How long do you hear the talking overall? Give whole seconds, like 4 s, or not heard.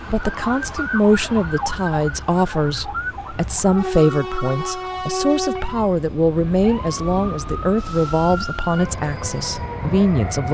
10 s.